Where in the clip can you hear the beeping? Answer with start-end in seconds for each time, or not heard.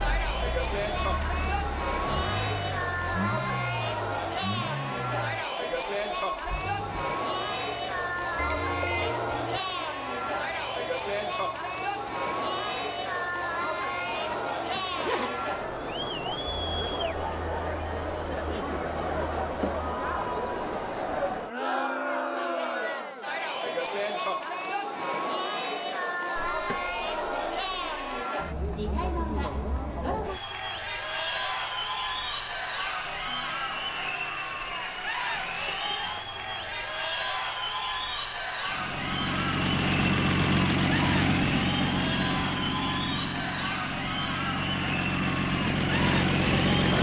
8.3-9.6, 26.4-28.2, 34.5-37.0.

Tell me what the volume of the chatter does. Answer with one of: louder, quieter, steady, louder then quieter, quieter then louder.
steady.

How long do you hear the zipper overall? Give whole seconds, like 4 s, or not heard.
2 s.